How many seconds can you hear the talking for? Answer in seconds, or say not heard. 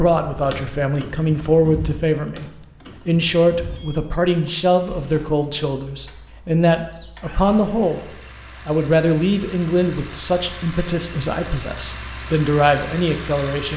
13 s.